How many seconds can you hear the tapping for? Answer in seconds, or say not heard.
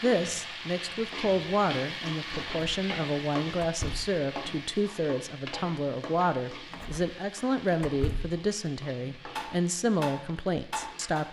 2 s.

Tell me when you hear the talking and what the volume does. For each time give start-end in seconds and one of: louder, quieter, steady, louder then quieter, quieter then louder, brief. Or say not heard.
0.0-11.2 steady.